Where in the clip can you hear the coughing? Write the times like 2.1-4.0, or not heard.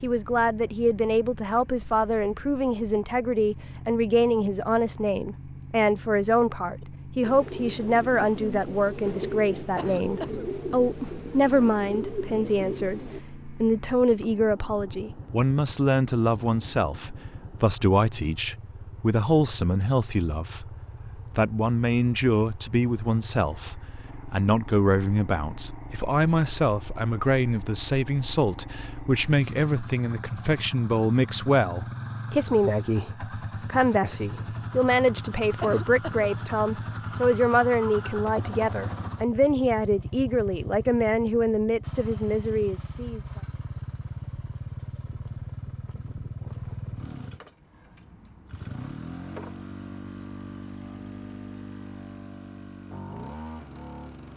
9.8-10.4, 35.6-36.3.